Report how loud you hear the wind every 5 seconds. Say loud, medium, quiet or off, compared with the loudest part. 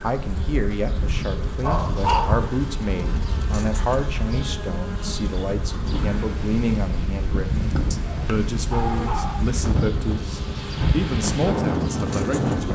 medium, medium, loud.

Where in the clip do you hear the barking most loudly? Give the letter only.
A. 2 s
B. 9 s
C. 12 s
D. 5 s
A.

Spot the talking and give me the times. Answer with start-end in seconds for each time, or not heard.
0.0-12.7.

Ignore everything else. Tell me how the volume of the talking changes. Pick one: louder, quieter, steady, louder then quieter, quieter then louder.
steady.